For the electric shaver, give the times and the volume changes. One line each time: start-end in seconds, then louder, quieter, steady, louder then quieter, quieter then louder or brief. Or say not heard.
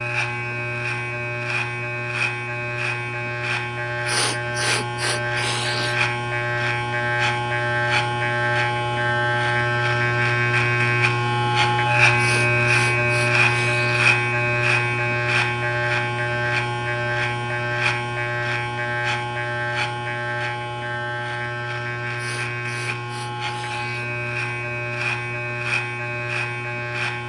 0.0-27.2 louder then quieter.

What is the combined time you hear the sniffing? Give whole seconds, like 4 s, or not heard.
6 s.